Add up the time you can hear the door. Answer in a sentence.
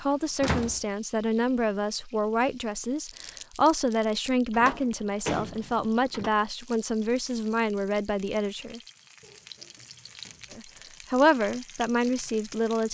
You can hear the door for 4 seconds altogether.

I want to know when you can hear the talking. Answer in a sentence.
You can hear the talking from 0.0 to 8.8 s and from 10.6 to 12.8 s.